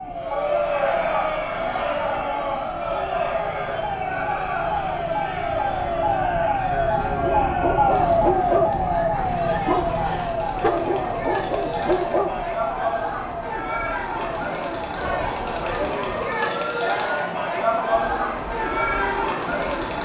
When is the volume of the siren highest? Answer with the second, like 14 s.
8 s.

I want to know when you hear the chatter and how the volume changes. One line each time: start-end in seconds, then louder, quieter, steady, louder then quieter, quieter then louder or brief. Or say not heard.
0.1-20.0 quieter then louder.